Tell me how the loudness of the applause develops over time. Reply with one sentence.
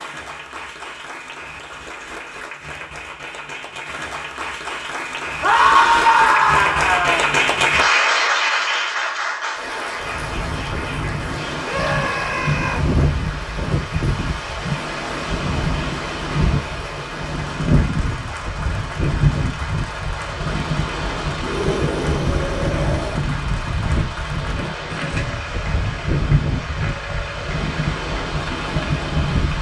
The volume of the applause goes up, then down.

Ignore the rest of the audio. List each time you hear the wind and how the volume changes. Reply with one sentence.
The wind can be heard from 9.9 to 29.5 s, at a steady volume.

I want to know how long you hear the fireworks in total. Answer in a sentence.
The fireworks can't be heard in this clip.